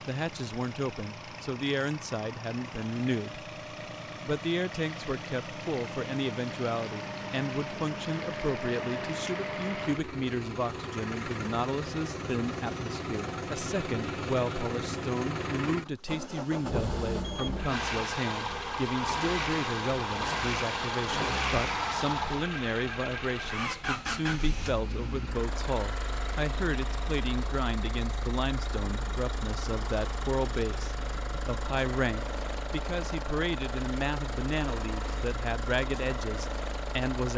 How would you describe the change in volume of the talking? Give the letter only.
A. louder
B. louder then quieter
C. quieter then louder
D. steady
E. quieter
D.